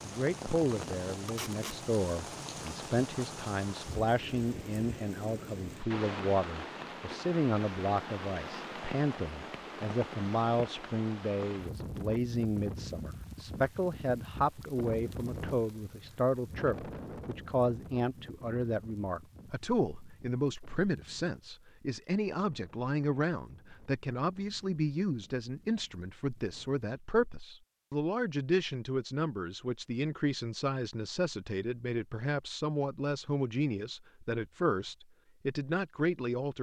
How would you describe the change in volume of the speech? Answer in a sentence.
The volume of the speech stays about the same.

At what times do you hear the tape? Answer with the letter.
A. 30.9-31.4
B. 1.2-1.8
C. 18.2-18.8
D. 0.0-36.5
B.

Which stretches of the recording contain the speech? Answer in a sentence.
You can hear the speech from 0.0 to 36.5 s.